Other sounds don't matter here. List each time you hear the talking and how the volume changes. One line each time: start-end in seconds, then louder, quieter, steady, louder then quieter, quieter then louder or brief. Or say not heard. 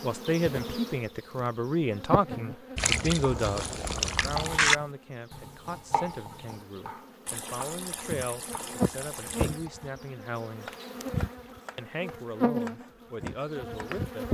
0.0-10.7 quieter
11.8-14.2 brief.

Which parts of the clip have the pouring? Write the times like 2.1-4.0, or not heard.
2.8-4.8, 7.2-9.7.